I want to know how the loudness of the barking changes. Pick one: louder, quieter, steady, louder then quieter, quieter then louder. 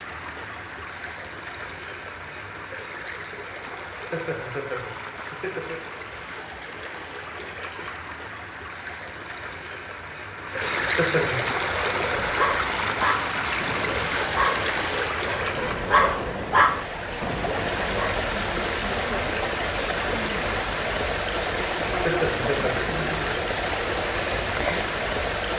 quieter then louder.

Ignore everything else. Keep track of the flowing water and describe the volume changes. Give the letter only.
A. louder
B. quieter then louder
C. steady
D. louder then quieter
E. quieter
A.